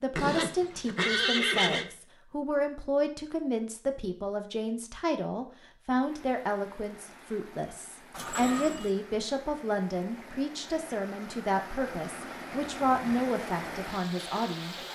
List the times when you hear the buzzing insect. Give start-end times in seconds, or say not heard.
not heard.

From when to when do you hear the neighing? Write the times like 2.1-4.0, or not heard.
0.1-1.9, 8.1-8.9.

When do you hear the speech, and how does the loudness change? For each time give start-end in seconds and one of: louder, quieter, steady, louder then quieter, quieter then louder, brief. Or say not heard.
0.0-14.8 steady.